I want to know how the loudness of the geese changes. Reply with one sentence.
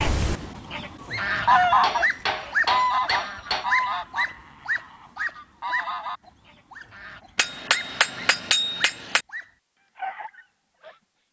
The loudness of the geese goes down, then up.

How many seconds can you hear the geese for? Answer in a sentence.
You can hear the geese for 7 seconds altogether.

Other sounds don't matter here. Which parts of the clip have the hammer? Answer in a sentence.
You can hear the hammer from 1.8 to 3.6 s and from 7.3 to 9.2 s.